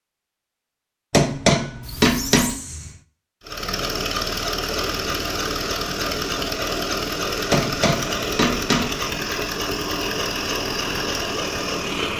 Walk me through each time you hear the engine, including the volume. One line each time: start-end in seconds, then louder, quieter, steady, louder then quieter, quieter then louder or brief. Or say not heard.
3.4-12.1 steady.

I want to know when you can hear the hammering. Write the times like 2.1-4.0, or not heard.
1.1-2.5, 7.5-8.9.